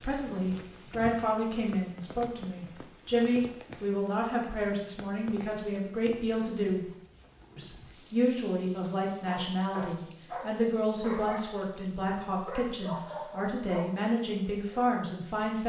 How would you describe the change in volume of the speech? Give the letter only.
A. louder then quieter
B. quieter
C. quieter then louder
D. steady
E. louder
D.